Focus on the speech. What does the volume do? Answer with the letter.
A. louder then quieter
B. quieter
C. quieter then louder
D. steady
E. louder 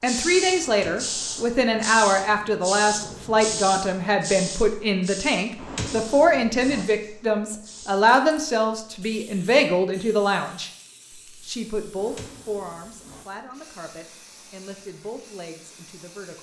B.